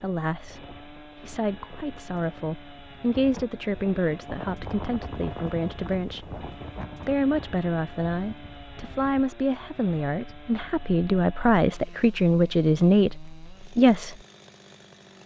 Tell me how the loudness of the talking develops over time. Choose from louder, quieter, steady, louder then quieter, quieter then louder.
louder.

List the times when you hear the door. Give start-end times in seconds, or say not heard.
not heard.